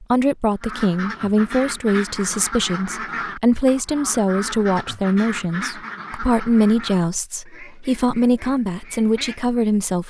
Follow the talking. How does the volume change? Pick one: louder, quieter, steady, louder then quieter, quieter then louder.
steady.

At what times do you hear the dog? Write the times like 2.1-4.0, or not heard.
not heard.